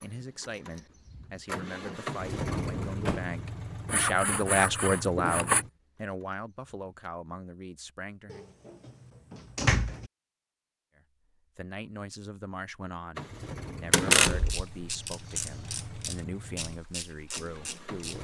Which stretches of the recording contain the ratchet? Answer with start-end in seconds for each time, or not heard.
14.2-18.2.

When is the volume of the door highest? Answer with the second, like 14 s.
14 s.